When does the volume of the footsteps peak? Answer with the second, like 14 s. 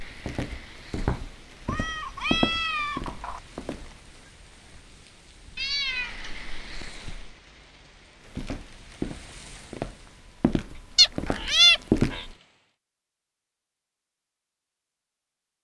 12 s.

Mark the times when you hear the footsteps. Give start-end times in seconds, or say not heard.
0.0-4.2, 8.3-12.3.